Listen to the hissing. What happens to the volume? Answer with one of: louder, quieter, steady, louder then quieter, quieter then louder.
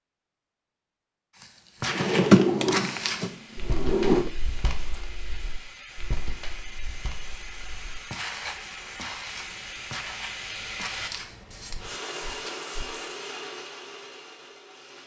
louder.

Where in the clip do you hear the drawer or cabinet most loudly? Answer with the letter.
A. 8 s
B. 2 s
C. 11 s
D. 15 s
B.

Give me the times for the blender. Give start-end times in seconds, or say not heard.
11.8-15.0.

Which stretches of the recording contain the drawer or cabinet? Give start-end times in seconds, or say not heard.
1.9-4.3.